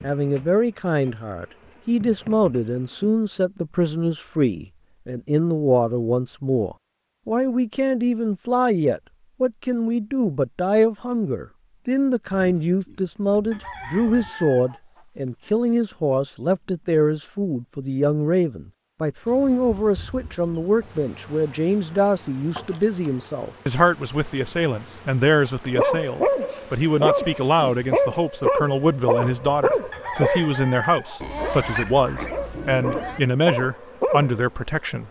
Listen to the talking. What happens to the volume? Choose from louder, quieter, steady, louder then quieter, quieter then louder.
steady.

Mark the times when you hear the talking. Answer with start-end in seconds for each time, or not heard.
0.0-35.0.